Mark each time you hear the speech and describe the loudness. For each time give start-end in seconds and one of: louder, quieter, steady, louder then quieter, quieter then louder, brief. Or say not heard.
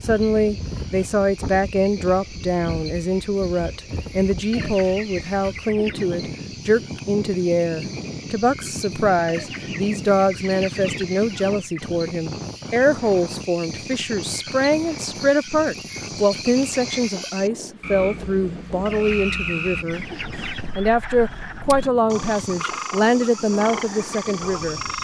0.0-20.1 steady
20.8-24.8 quieter.